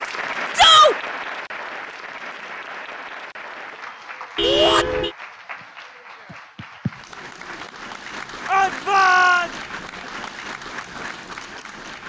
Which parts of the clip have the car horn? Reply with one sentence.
The car horn can be heard from 4.3 to 5.2 s.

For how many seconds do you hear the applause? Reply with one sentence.
The applause can be heard for 12 seconds in total.